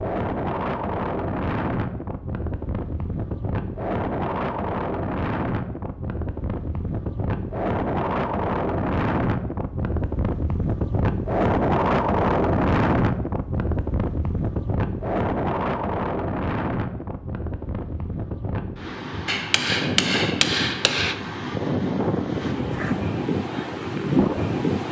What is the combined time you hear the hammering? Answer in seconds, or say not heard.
2 s.